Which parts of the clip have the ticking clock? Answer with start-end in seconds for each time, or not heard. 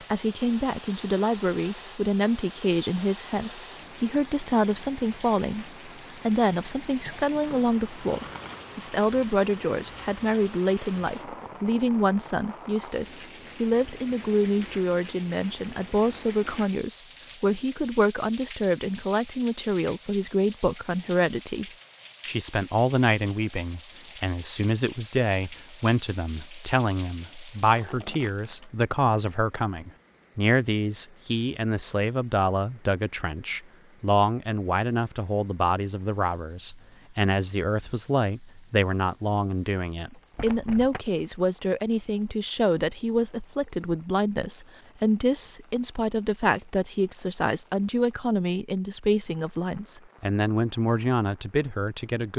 not heard.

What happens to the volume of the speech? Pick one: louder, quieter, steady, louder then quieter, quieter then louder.
steady.